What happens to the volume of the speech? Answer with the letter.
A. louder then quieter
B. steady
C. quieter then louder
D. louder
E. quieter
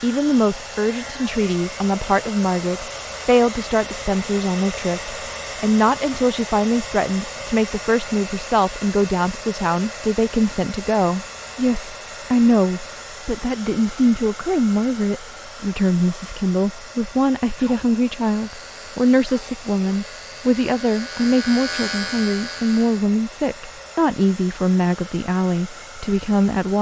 B.